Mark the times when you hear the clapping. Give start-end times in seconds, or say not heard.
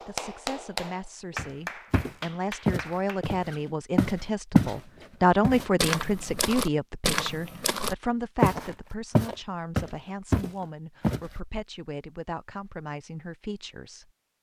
0.0-3.2.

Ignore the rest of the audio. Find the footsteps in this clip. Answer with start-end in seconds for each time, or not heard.
1.4-4.8, 5.4-11.2.